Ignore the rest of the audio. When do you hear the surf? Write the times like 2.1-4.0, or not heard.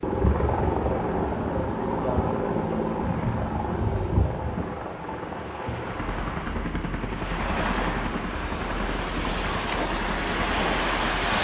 0.0-11.4.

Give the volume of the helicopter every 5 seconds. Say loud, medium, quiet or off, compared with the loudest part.
loud, medium, medium.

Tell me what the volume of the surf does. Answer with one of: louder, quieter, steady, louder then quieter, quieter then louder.
louder.